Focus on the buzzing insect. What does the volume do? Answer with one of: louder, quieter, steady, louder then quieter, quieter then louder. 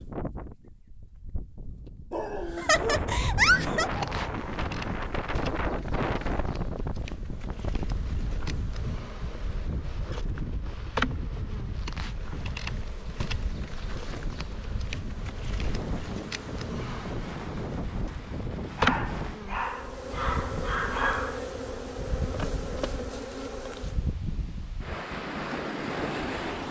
louder.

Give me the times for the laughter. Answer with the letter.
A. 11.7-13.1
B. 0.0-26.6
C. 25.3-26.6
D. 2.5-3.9
D.